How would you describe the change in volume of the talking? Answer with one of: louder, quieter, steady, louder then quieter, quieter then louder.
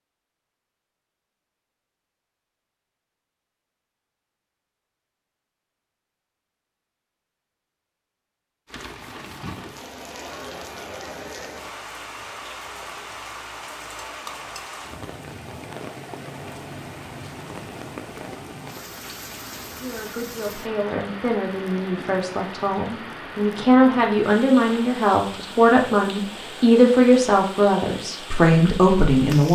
louder.